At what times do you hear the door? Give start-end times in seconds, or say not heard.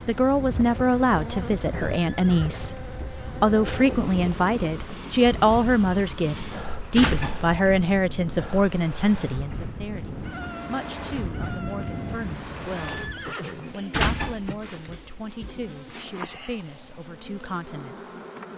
7.0-7.5, 13.9-15.8.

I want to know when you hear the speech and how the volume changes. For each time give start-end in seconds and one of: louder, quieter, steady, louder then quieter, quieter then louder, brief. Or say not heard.
0.1-13.1 quieter
13.7-18.5 quieter then louder.